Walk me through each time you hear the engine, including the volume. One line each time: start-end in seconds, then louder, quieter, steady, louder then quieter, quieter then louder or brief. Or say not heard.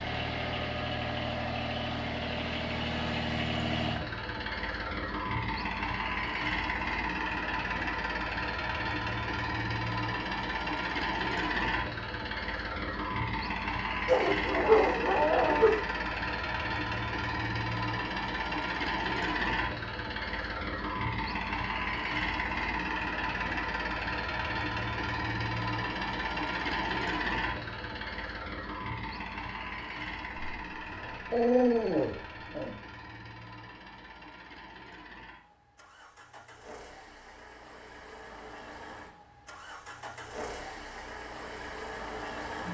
0.0-42.6 quieter.